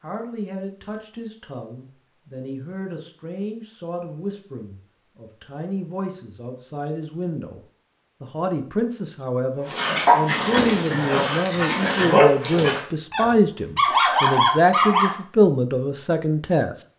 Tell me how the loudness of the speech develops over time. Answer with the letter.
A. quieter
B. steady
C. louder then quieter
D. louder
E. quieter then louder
D.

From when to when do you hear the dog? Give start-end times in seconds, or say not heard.
9.7-15.2.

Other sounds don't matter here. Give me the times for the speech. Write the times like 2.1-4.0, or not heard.
0.0-7.6, 8.2-16.8.